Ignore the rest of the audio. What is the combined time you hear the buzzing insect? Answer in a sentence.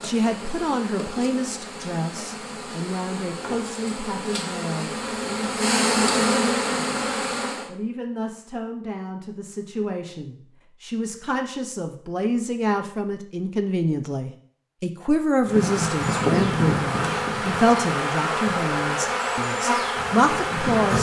You can hear the buzzing insect for 13 seconds altogether.